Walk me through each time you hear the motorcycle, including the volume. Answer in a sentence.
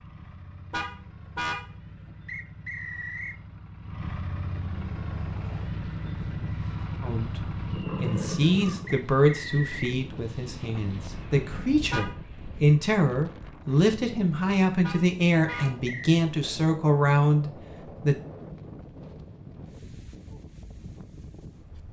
You can hear the motorcycle from 0.0 to 9.1 s, getting louder.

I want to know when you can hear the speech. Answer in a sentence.
The speech can be heard from 7.0 to 18.1 s.